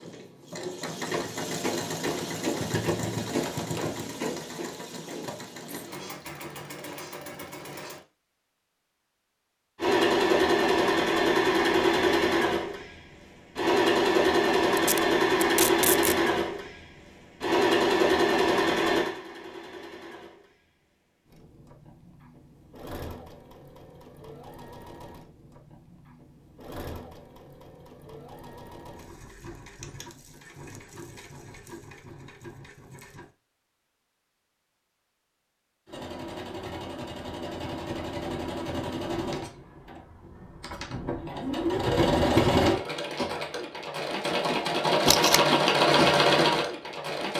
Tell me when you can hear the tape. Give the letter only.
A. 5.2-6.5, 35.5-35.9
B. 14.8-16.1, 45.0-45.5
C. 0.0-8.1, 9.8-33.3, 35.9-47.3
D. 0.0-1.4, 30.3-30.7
B.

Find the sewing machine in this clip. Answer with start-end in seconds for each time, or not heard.
0.0-8.1, 9.8-33.3, 35.9-47.3.